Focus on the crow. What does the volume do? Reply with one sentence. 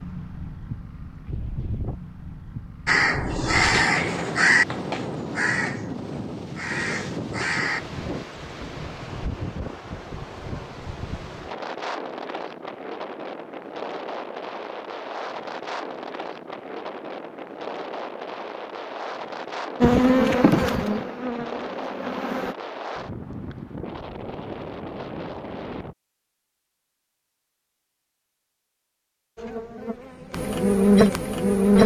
The loudness of the crow goes down, then up.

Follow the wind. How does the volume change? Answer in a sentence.
The volume of the wind stays about the same.